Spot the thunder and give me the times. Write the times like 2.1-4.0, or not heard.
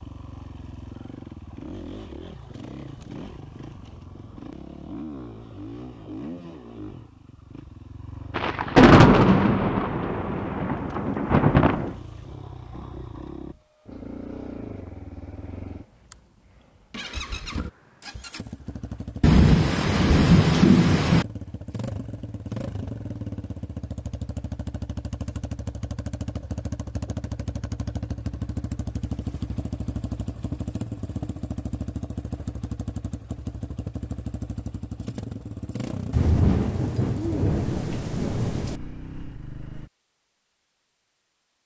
8.3-11.9, 19.2-21.2, 36.1-38.8.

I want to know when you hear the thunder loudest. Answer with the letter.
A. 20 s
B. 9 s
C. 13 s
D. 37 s
B.